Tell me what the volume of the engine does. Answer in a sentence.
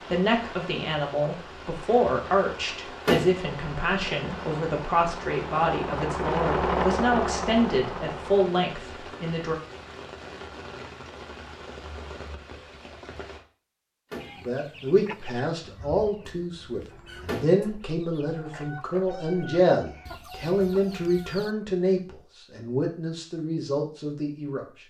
The volume of the engine goes up, then down.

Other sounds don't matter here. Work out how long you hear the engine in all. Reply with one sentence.
You can hear the engine for 5 seconds altogether.